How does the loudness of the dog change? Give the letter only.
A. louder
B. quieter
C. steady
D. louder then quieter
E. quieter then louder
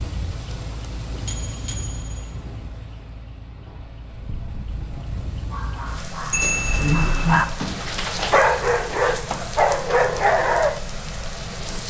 A.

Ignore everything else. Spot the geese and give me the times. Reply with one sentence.
You can't hear the geese here.